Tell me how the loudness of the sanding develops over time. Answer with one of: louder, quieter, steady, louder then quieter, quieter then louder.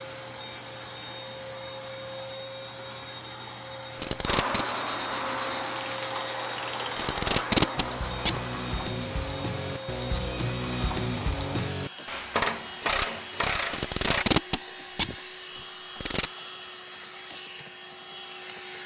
quieter.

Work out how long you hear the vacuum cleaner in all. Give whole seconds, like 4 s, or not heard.
19 s.